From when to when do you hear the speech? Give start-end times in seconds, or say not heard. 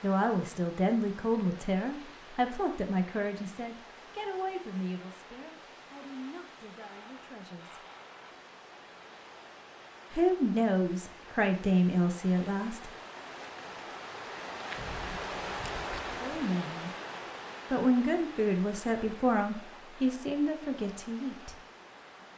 0.0-7.8, 10.1-12.9, 16.1-16.9, 17.7-21.6.